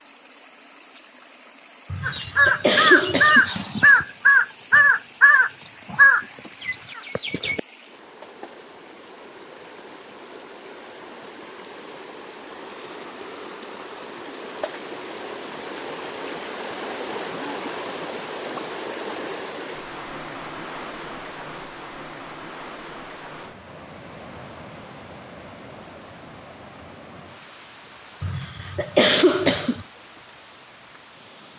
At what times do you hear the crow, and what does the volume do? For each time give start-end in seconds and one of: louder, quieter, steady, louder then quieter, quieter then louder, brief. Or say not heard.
2.0-7.6 quieter.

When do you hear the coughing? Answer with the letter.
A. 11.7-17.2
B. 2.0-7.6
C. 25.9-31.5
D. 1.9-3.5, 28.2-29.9
D.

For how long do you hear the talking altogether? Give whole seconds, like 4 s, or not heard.
not heard.